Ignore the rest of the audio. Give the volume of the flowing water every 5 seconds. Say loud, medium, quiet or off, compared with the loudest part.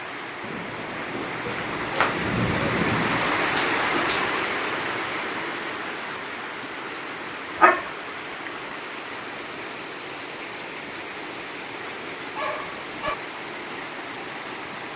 loud, medium, medium.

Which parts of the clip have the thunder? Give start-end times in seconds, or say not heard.
0.4-4.3.